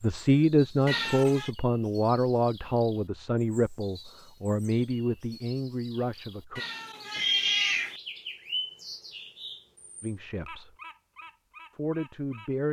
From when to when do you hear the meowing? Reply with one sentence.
You can hear the meowing from 0.8 to 1.5 s and from 6.5 to 8.0 s.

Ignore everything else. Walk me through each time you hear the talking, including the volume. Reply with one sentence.
You can hear the talking from 0.0 to 6.6 s, getting quieter; briefly from 10.0 to 10.7 s; and briefly from 11.7 to 12.6 s.